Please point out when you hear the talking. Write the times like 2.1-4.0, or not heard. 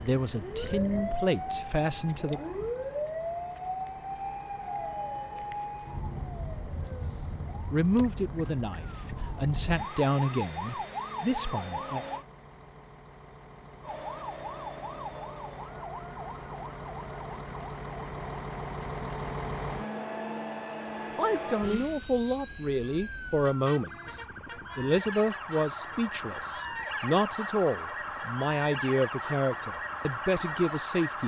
0.0-2.4, 7.7-12.1, 21.1-31.2.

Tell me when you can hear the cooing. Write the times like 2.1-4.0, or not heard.
not heard.